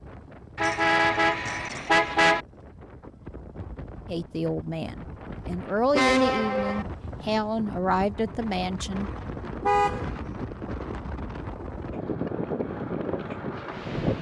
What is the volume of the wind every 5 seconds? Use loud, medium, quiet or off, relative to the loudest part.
quiet, medium, loud.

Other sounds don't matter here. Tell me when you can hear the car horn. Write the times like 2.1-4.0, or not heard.
0.6-2.5, 6.0-6.8, 9.6-10.1.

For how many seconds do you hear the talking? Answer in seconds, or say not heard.
5 s.